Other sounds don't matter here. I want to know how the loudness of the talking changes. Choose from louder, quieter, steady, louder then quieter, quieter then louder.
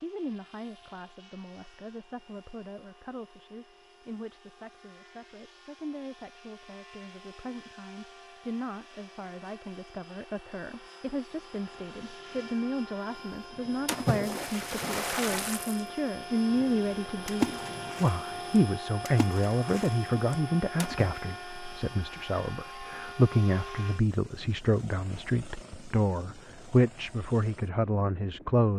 louder.